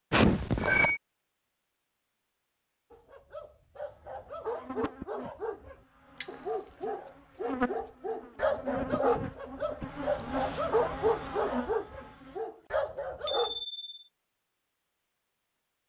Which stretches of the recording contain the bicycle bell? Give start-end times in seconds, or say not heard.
0.1-1.0, 6.2-6.8, 13.2-14.0.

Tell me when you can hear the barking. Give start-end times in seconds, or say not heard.
2.9-13.6.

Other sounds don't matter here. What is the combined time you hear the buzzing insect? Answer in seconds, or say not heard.
8 s.